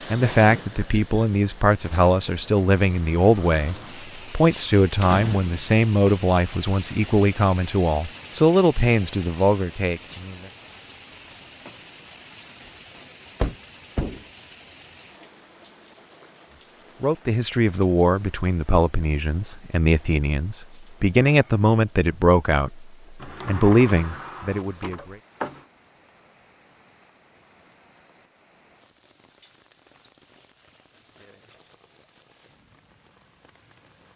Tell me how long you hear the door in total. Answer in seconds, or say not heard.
4 s.